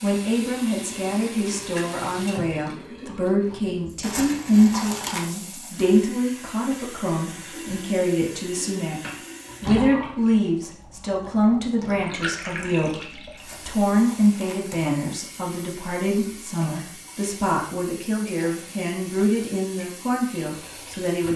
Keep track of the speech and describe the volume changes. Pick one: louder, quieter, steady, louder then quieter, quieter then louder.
steady.